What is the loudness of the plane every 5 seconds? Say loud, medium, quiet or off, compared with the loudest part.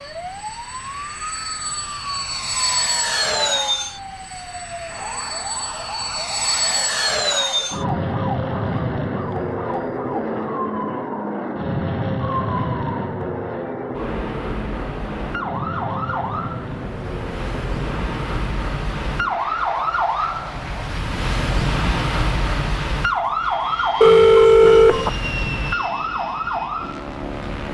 loud, loud, loud, medium, medium, medium.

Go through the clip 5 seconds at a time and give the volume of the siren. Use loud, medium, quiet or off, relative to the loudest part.
medium, medium, medium, loud, loud, loud.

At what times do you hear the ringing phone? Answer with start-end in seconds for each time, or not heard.
24.0-25.1.